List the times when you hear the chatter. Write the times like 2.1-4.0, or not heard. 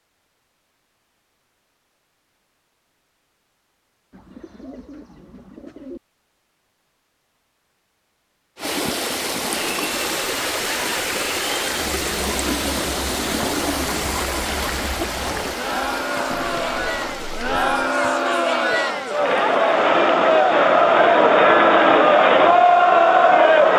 9.6-23.7.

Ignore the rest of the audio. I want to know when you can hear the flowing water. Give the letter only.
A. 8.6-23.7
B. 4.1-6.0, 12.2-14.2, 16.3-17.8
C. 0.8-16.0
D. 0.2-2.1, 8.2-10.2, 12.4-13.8
A.